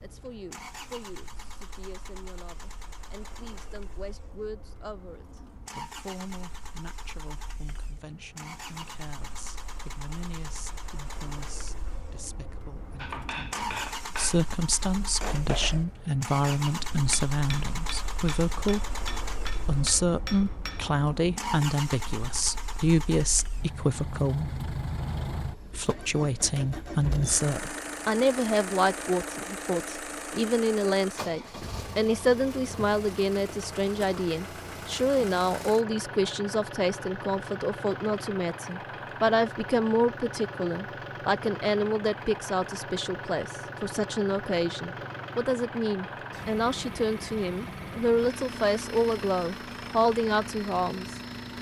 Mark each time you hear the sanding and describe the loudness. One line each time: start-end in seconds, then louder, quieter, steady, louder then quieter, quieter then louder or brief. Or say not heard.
not heard.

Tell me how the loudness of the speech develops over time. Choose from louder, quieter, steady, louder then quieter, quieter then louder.
louder.